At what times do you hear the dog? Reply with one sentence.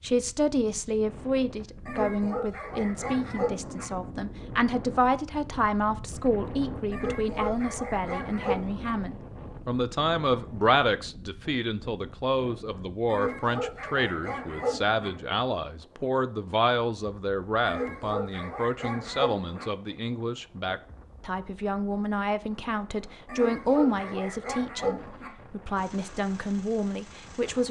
The dog can be heard from 1.9 to 3.9 s, from 6.9 to 8.9 s, from 13.1 to 15.1 s, from 17.6 to 19.6 s and from 23.2 to 25.3 s.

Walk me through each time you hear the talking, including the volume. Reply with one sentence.
The talking can be heard from 0.0 to 27.6 s, at a steady volume.